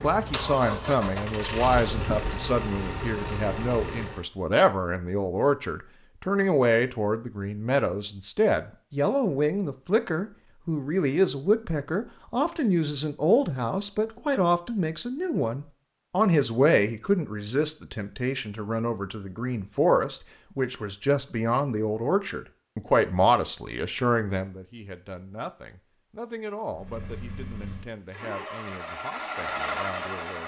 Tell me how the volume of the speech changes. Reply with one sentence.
The loudness of the speech goes down.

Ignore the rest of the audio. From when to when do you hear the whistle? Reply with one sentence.
The whistle can't be heard in this clip.